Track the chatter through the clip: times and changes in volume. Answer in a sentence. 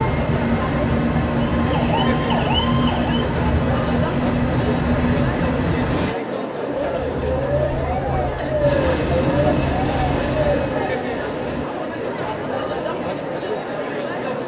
The chatter can be heard from 0.0 to 14.4 s, at a steady volume.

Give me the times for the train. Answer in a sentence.
The train can be heard from 0.0 to 6.2 s and from 8.6 to 11.7 s.